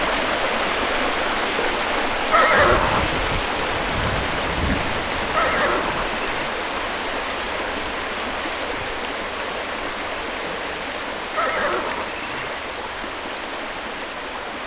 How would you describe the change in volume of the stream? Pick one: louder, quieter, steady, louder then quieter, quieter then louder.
quieter.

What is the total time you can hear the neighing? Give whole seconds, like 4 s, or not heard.
3 s.